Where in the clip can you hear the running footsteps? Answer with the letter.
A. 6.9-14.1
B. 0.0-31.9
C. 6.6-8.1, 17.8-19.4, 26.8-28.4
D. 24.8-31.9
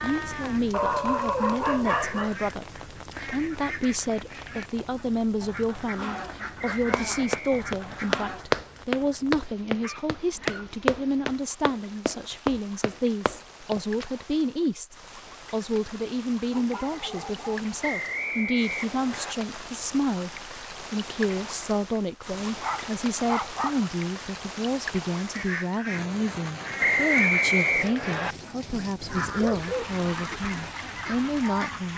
A.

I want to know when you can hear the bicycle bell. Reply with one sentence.
You can't hear the bicycle bell here.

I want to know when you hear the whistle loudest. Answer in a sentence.
The loudest moment of the whistle is at 27 seconds.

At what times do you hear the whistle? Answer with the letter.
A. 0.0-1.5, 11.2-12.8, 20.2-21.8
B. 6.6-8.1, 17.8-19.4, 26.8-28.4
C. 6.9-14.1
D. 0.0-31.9
B.